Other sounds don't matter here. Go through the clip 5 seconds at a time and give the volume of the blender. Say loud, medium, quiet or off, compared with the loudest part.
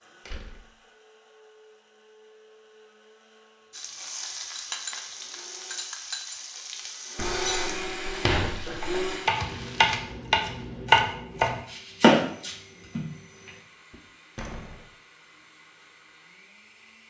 quiet, loud, quiet, quiet.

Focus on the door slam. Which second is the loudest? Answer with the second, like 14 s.
8 s.